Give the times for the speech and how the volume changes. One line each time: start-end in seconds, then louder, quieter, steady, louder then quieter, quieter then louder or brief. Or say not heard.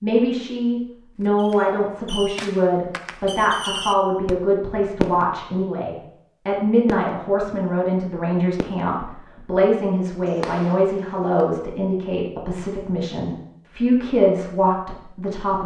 0.0-15.6 steady.